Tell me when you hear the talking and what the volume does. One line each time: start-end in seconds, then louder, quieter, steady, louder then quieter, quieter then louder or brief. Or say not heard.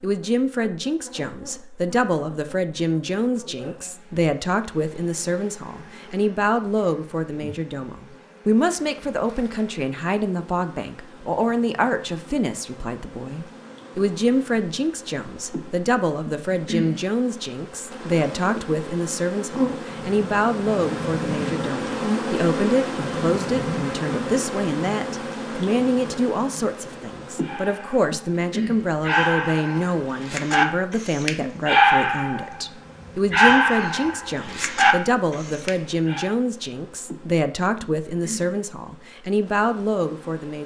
0.0-40.6 steady.